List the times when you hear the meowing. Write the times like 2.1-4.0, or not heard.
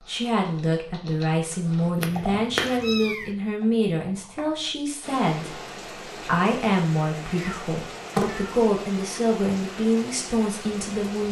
1.9-3.2, 7.2-8.7.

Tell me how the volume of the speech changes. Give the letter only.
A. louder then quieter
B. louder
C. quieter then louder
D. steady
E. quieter
D.